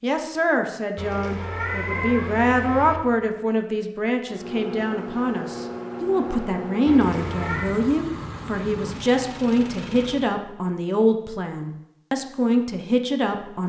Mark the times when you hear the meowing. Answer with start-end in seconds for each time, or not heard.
0.9-3.0, 6.8-7.8.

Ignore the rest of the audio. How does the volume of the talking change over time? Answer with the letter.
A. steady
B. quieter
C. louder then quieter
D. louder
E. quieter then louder
A.